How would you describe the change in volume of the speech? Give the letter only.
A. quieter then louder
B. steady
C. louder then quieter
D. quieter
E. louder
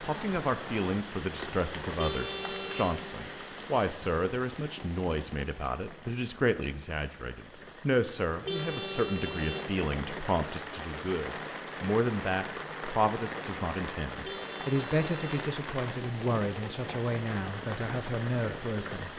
B.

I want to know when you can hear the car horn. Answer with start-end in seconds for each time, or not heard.
1.9-3.0, 8.4-9.7, 14.2-15.4.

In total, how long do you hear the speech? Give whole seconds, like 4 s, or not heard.
19 s.